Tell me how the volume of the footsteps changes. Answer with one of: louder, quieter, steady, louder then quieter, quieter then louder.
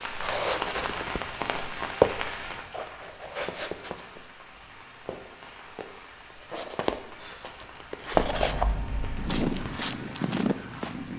quieter then louder.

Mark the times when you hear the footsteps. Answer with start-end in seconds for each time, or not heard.
0.1-10.9.